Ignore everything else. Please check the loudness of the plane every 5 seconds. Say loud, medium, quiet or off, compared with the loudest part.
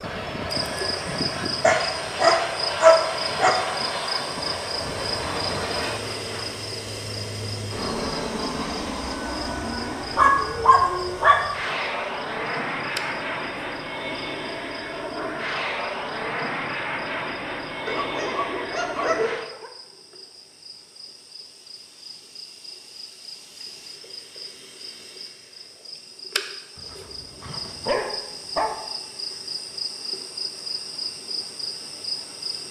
loud, loud, loud, loud, off, off, off.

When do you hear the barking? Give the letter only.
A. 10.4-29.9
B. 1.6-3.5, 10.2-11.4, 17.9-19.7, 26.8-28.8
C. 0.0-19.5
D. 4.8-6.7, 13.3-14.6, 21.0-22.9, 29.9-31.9
B.